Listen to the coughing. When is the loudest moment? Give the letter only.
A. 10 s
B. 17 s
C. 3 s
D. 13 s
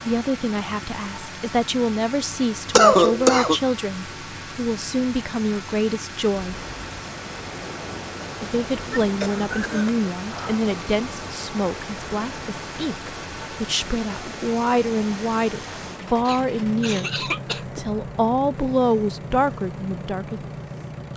C.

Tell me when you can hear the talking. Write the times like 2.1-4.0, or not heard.
0.1-6.6, 8.4-20.4.